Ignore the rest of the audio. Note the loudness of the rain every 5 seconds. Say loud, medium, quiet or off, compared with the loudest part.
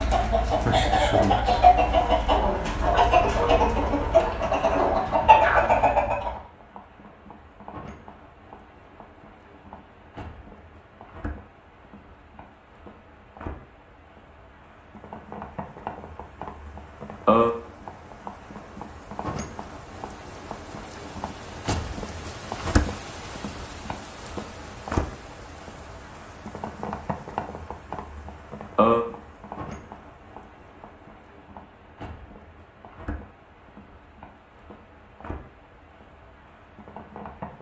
medium, quiet, quiet, loud, loud, loud, quiet, quiet.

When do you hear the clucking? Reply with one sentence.
The clucking can be heard from 0.0 to 6.4 s.